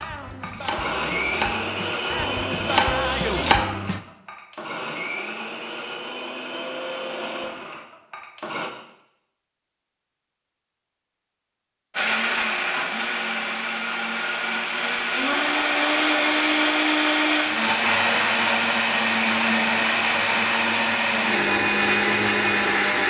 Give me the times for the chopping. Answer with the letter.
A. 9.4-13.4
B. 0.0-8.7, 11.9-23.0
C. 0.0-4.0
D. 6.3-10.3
C.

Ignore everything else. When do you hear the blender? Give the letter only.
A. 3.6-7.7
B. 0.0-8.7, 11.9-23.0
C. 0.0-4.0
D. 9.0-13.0
B.